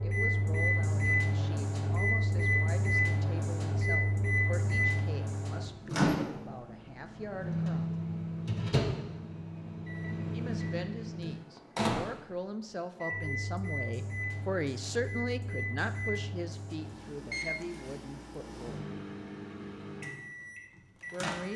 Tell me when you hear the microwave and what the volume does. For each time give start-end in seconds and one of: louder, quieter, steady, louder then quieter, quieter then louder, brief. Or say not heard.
0.0-21.5 quieter.